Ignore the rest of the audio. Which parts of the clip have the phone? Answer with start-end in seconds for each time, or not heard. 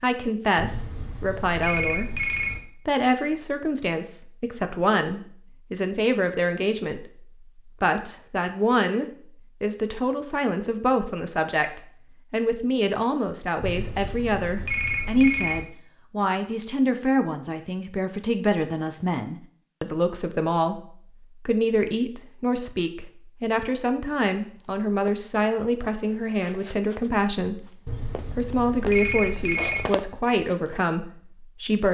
0.6-2.6, 13.6-15.7, 27.9-29.9.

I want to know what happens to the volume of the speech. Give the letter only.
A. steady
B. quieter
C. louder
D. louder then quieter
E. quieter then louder
A.